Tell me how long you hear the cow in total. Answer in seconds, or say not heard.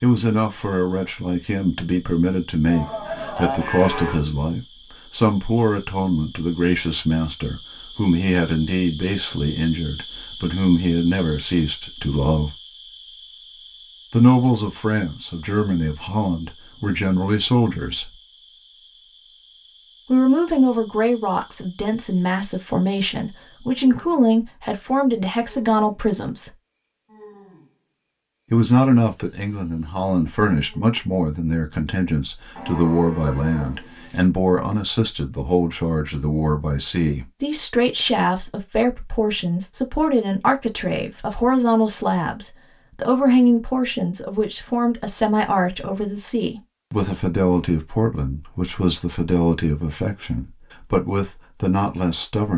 3 s.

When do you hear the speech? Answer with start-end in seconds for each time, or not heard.
0.0-12.6, 14.1-18.1, 20.1-26.5, 28.5-52.5.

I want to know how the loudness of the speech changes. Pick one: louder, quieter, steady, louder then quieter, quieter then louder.
steady.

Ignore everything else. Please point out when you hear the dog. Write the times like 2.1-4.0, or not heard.
not heard.